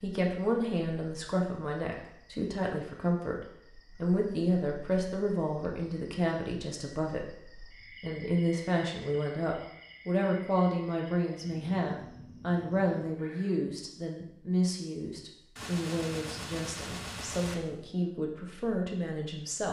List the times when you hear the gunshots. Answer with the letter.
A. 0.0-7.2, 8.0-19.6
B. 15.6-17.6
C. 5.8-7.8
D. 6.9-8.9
B.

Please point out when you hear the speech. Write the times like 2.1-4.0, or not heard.
0.0-7.2, 8.0-19.6.